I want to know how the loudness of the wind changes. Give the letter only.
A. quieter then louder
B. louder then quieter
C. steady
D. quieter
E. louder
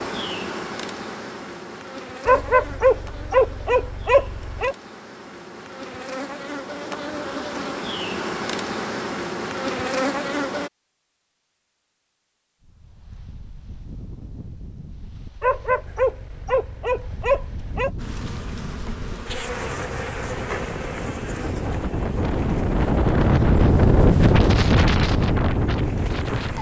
E.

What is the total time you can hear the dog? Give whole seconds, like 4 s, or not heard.
5 s.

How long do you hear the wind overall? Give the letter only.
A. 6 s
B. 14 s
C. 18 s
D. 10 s
B.